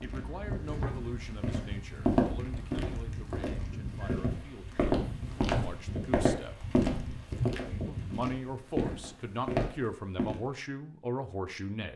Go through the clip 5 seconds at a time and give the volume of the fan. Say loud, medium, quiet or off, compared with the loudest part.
medium, loud, off.